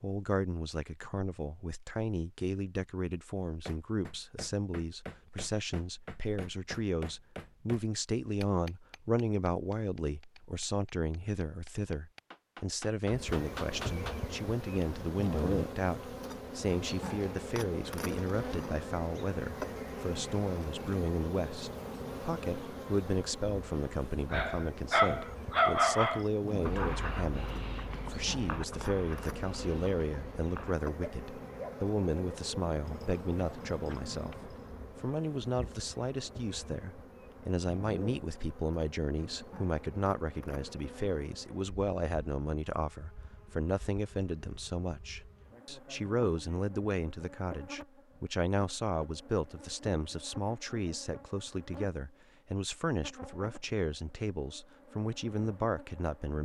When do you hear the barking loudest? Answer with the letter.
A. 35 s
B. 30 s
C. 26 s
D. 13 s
C.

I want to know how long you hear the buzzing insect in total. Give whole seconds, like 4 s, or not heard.
43 s.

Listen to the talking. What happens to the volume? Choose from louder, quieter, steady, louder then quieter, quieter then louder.
steady.